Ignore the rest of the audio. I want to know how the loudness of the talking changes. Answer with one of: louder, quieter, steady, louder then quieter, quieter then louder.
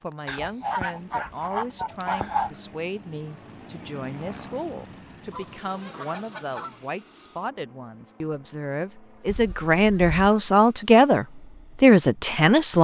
louder.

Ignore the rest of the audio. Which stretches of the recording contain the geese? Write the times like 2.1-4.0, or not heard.
0.2-2.5, 5.3-6.8, 9.2-10.2.